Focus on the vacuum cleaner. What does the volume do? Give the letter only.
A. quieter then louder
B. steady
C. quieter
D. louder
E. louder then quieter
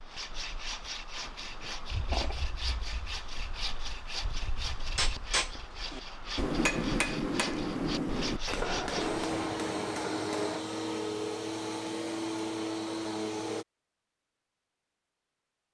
B.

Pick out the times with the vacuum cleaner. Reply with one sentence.
The vacuum cleaner can be heard from 8.9 to 13.7 s.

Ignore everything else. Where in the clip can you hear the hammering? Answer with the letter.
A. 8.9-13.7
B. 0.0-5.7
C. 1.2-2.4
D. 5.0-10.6
D.